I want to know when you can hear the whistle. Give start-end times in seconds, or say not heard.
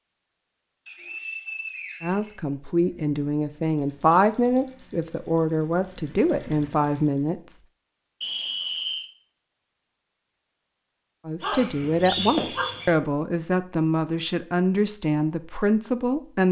0.8-2.8, 8.2-9.1, 11.4-12.9.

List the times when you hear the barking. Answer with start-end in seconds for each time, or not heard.
11.4-12.9.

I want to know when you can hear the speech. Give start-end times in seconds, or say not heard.
2.0-7.5, 11.2-16.4.